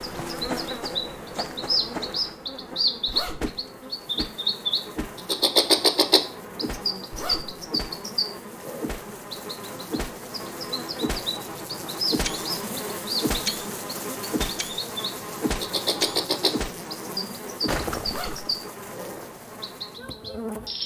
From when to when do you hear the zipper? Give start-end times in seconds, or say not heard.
3.0-3.6, 7.1-7.7, 18.1-18.6.